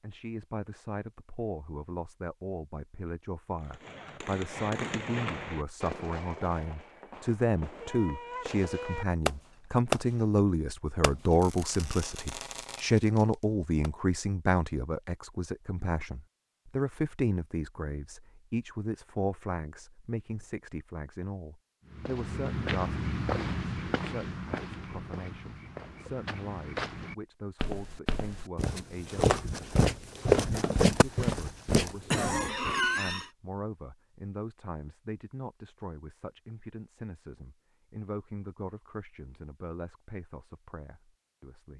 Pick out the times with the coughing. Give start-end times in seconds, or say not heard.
32.1-33.3.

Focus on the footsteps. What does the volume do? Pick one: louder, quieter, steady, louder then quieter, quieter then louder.
quieter then louder.